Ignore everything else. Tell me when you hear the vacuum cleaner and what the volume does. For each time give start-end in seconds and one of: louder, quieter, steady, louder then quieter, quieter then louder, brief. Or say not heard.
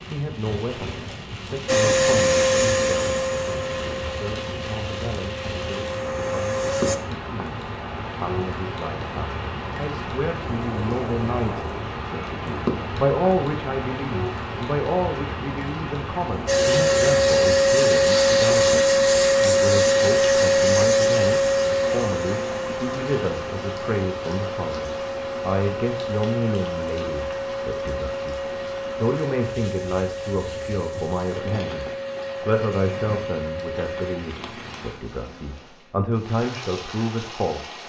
1.6-7.0 quieter then louder
16.4-34.2 quieter.